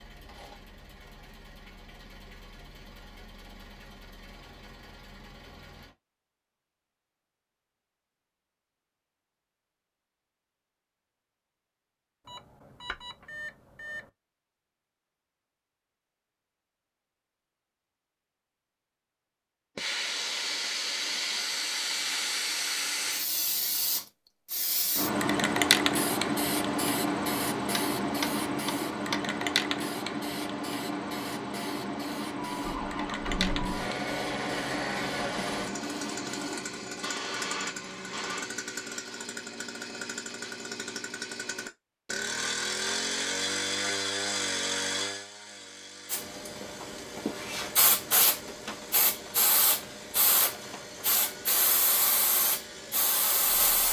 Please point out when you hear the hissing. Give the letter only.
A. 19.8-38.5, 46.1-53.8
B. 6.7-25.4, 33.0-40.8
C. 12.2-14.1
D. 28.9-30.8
A.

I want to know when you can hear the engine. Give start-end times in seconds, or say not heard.
0.0-6.0, 32.4-53.5.